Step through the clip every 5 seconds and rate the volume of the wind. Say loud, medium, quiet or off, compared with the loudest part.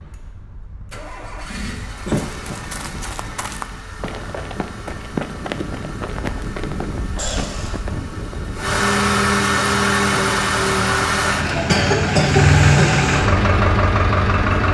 medium, loud, off.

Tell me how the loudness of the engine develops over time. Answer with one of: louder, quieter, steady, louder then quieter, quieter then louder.
louder.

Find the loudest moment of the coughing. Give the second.
12 s.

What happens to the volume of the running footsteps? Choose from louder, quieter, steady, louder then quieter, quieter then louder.
louder then quieter.